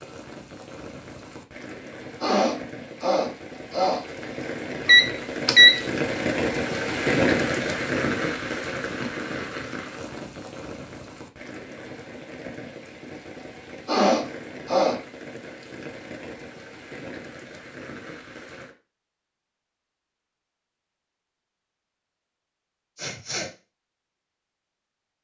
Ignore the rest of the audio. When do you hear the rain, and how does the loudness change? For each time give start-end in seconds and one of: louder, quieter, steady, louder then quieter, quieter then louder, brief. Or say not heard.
0.0-18.7 louder then quieter.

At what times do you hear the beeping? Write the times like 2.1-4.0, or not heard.
4.8-5.8.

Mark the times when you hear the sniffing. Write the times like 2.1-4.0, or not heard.
2.2-4.0, 13.8-15.0, 22.9-23.5.